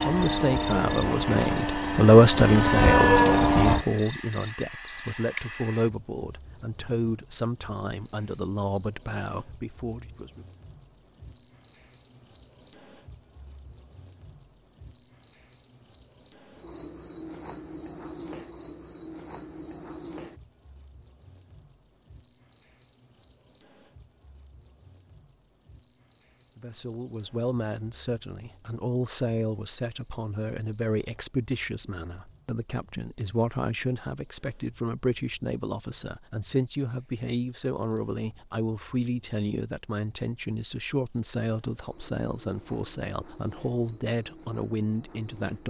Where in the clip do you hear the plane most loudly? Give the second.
3 s.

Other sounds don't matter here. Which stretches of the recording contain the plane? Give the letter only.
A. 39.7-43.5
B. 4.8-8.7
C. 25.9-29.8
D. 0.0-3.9
D.